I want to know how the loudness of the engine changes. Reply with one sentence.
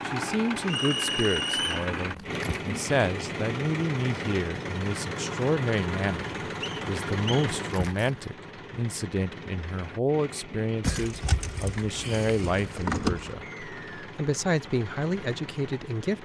The loudness of the engine goes down.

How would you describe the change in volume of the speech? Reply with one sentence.
The loudness of the speech stays about the same.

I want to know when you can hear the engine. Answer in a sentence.
You can hear the engine from 0.0 to 16.2 s.